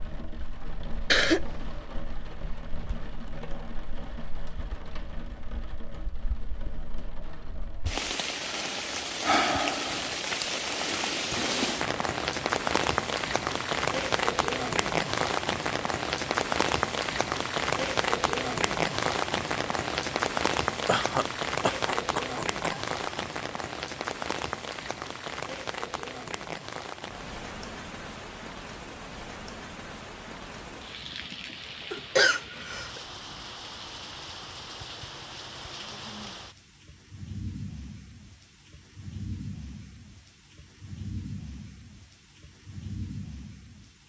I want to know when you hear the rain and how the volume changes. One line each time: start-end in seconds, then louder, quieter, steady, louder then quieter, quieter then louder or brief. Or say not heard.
0.0-44.0 louder then quieter.